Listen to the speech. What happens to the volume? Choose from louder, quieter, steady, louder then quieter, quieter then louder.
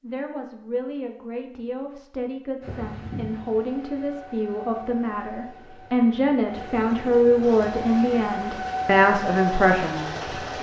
louder.